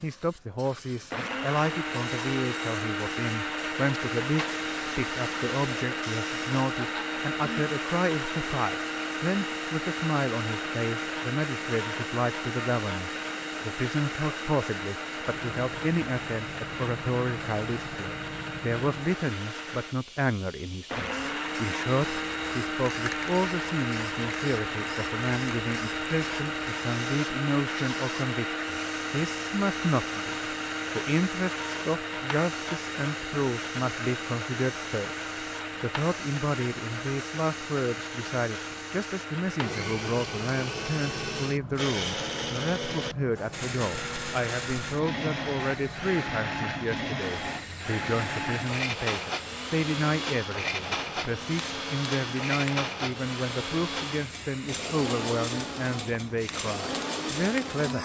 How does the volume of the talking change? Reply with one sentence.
The volume of the talking stays about the same.